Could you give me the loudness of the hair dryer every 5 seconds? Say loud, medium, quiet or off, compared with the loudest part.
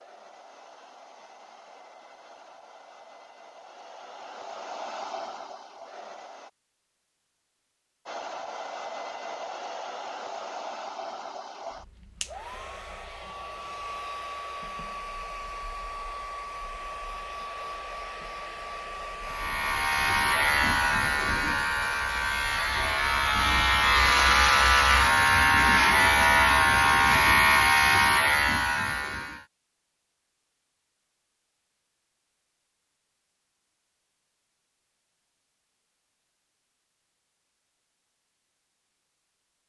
medium, loud, loud, loud, loud, off, off, off.